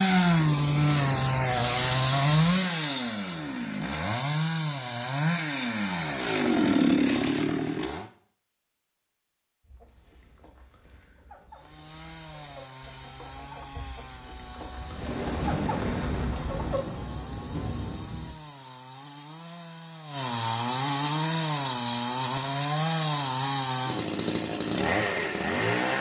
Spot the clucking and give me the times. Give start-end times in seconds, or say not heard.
9.6-17.0.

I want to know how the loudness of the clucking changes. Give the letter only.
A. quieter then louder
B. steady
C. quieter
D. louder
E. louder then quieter
D.